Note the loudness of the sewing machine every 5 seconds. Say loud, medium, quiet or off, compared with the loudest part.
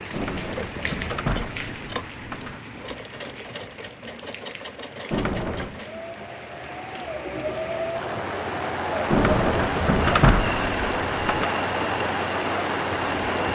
medium, loud, loud.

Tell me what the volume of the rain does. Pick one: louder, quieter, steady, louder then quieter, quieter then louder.
quieter then louder.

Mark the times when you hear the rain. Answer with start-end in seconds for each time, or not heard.
0.0-13.5.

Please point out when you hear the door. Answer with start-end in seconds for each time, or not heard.
0.1-2.6, 5.1-5.8, 9.1-11.4.